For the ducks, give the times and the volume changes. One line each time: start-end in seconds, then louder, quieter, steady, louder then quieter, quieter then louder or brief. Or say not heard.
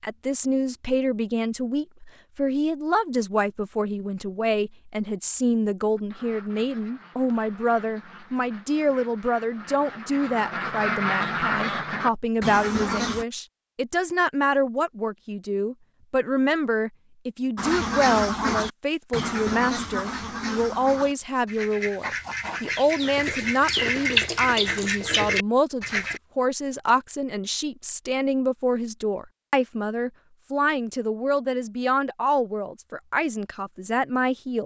6.0-13.2 louder
17.6-26.2 quieter then louder.